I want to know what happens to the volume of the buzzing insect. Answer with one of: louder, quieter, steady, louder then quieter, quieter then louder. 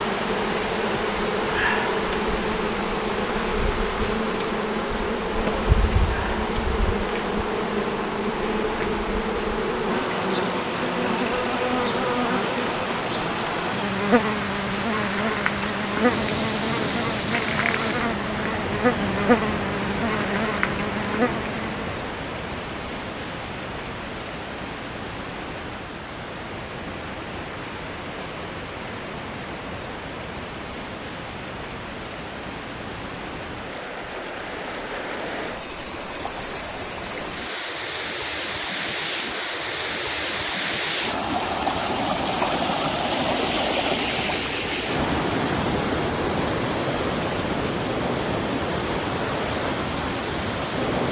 steady.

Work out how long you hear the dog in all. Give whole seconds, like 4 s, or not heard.
not heard.